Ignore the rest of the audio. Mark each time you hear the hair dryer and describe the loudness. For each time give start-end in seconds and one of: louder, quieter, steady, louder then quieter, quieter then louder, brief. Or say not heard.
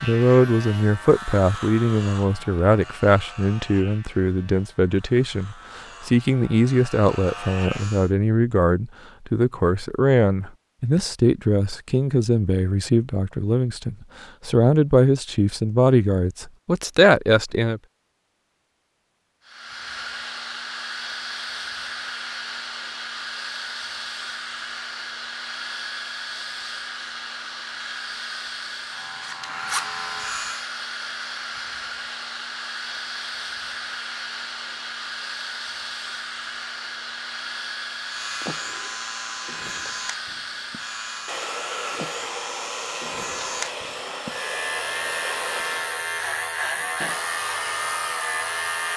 19.4-48.9 steady.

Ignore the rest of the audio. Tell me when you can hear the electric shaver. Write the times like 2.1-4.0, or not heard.
0.0-8.1, 28.9-30.7, 38.0-48.9.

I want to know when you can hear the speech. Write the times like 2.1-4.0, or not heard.
0.0-17.8.